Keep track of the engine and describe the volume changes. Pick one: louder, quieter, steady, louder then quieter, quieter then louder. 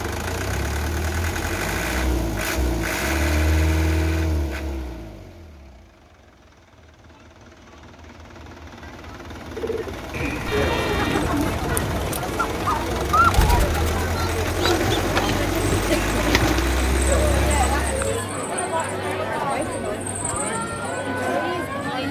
quieter then louder.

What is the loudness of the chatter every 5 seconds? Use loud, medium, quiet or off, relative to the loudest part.
off, off, loud, loud, loud.